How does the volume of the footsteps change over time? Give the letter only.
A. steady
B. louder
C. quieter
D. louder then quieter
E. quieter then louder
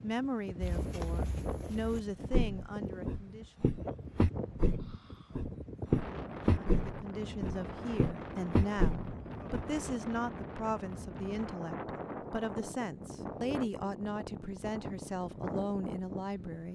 B.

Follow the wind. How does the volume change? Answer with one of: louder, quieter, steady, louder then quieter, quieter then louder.
steady.